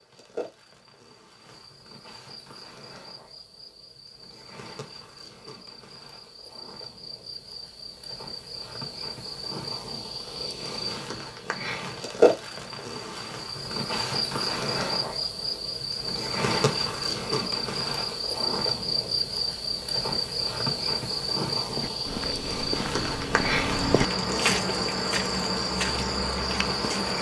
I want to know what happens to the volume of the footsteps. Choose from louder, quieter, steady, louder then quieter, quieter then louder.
louder then quieter.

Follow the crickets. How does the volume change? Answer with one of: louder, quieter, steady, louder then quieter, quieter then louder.
louder.